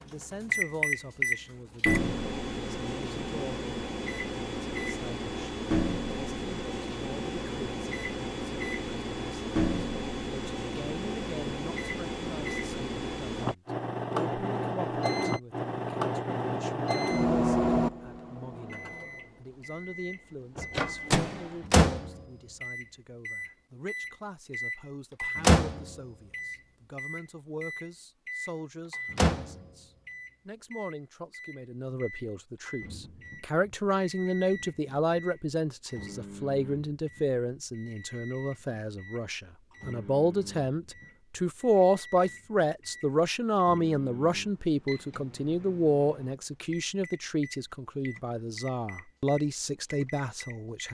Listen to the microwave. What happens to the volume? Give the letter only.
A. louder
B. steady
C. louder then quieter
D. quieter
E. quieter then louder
D.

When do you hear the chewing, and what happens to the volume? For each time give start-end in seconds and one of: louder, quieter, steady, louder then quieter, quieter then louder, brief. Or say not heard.
not heard.